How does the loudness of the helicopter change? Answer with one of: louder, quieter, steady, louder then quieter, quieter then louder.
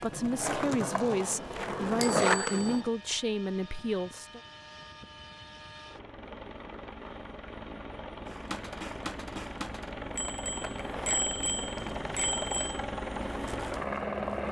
louder.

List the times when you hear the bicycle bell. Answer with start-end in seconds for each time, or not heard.
2.0-2.6, 10.2-12.8.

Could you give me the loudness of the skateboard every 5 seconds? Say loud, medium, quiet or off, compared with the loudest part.
loud, medium, quiet.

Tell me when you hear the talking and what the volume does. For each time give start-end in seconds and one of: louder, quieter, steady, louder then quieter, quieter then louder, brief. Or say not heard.
0.0-4.4 steady.